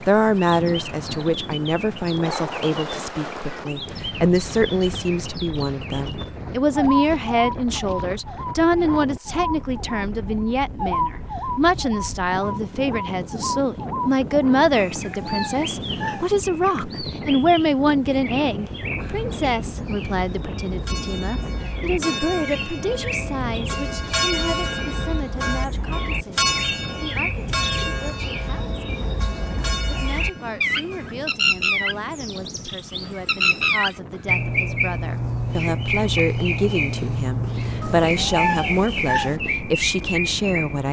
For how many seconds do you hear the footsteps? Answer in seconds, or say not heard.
not heard.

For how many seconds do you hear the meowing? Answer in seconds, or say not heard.
3 s.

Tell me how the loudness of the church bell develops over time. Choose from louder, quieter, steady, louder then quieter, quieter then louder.
louder then quieter.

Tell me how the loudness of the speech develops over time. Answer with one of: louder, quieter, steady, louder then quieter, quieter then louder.
quieter then louder.